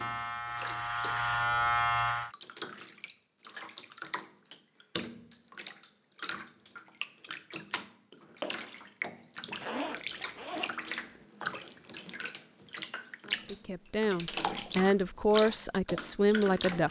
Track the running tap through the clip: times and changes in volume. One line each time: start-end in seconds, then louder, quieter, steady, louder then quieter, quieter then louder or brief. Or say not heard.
0.0-16.8 louder.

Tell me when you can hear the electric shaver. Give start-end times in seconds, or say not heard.
0.0-2.3.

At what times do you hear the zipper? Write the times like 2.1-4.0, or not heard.
9.5-11.2.